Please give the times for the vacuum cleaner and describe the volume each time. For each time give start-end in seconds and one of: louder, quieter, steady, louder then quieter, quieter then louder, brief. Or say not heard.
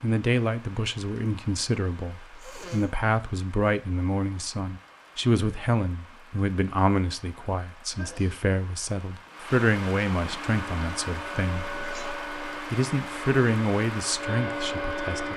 10.4-15.3 louder.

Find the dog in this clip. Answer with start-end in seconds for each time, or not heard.
not heard.